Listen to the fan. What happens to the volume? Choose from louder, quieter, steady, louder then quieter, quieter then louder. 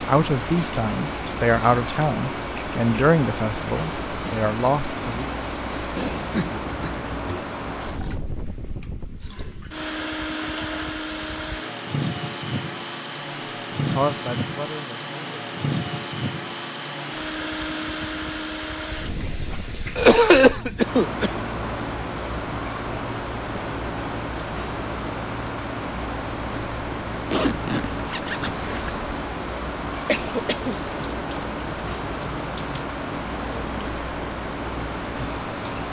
steady.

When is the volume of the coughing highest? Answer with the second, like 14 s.
20 s.